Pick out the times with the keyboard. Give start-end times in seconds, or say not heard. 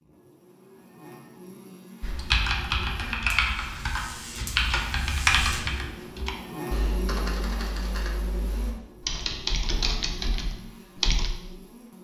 2.0-11.3.